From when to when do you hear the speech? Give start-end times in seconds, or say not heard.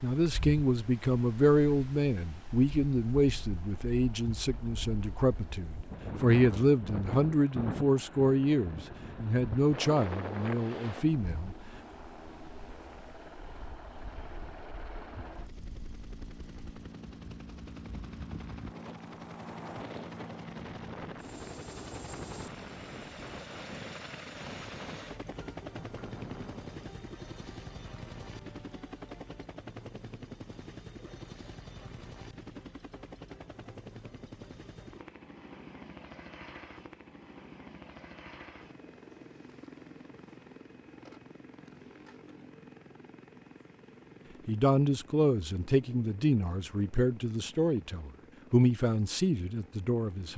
0.0-11.6, 44.5-50.3.